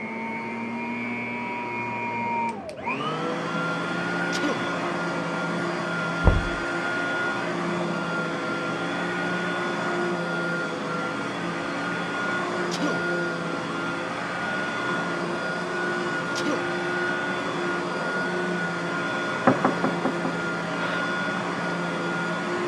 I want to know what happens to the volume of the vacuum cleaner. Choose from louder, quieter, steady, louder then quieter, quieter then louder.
steady.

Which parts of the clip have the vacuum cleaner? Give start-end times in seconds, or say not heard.
0.0-22.6.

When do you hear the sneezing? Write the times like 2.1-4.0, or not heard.
4.2-4.7, 12.5-13.1, 16.1-16.6.